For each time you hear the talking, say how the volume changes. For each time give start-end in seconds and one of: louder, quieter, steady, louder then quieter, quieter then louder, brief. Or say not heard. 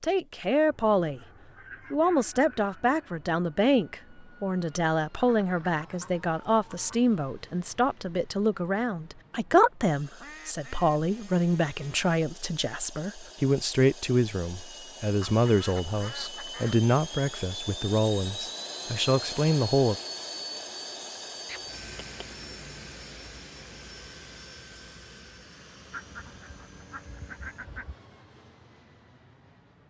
0.0-1.2 brief
1.9-19.9 steady.